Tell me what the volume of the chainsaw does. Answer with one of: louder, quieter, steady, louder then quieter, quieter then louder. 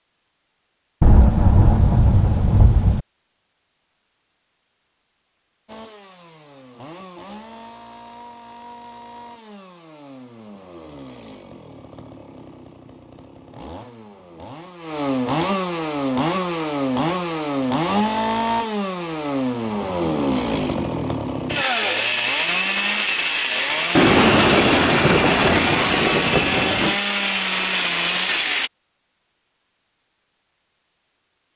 louder.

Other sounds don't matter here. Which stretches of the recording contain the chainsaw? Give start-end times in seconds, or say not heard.
5.7-28.7.